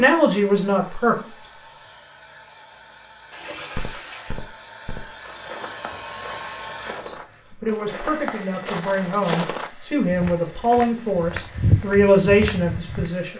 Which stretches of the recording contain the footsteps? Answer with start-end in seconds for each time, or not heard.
3.5-13.1.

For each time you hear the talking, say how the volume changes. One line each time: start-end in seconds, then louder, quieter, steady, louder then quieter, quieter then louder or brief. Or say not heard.
0.0-1.6 brief
7.0-13.3 louder.